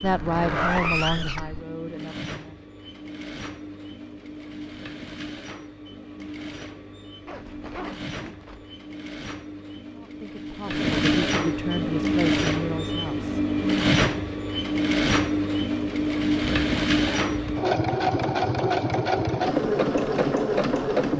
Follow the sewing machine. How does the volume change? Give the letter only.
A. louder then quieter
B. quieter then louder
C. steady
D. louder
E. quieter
D.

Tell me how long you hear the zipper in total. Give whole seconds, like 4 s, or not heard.
4 s.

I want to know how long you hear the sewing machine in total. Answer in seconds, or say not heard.
21 s.